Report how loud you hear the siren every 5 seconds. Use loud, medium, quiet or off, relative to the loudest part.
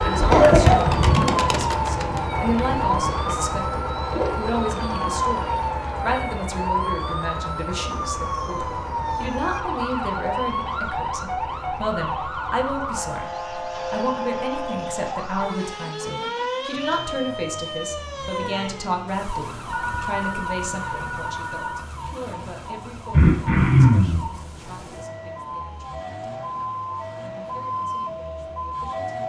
loud, loud, loud, loud, medium, loud.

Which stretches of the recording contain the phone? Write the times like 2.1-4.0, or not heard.
19.7-21.9.